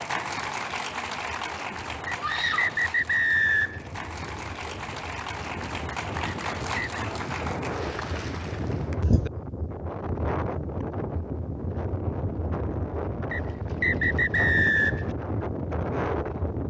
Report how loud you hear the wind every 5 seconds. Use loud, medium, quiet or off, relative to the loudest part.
quiet, loud, loud, loud.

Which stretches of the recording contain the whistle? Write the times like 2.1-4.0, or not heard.
2.0-3.8, 6.2-6.8, 13.3-15.1.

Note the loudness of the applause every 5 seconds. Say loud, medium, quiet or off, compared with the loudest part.
loud, loud, off, off.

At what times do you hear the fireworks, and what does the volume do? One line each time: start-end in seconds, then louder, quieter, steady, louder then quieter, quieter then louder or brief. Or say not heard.
not heard.